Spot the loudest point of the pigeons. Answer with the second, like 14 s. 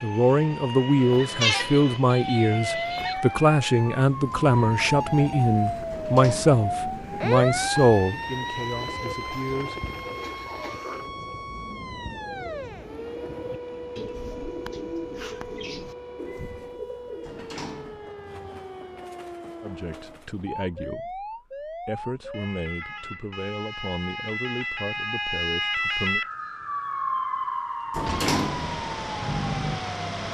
15 s.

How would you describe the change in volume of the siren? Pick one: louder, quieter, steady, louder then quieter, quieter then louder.
quieter then louder.